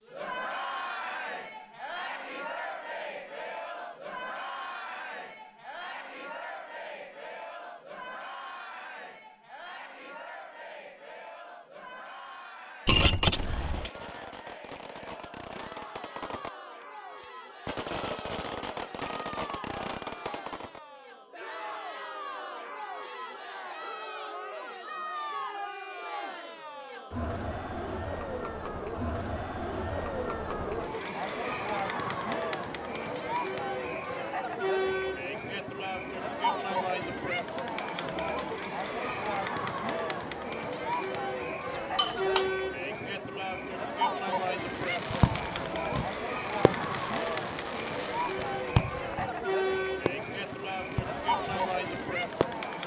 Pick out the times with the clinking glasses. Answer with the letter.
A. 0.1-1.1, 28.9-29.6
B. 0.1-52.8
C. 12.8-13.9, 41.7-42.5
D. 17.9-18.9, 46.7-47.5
C.